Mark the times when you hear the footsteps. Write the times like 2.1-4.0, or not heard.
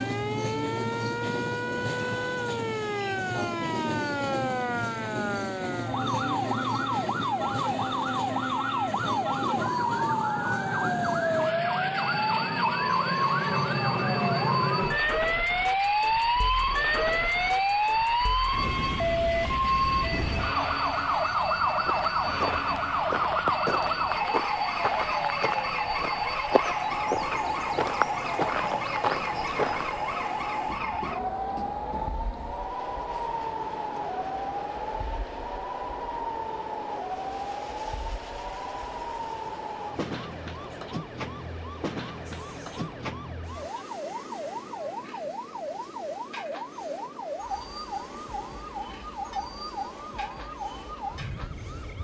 21.6-30.0.